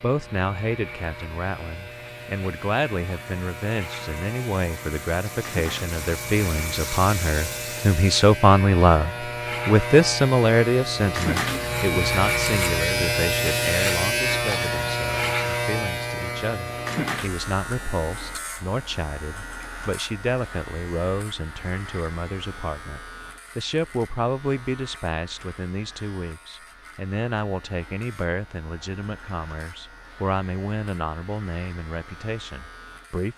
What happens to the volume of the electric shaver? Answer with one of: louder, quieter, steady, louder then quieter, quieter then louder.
louder then quieter.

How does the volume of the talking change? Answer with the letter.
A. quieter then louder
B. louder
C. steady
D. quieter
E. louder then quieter
E.